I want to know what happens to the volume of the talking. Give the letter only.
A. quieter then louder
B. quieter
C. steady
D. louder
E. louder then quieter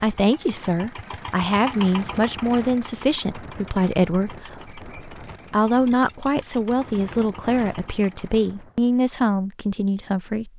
C.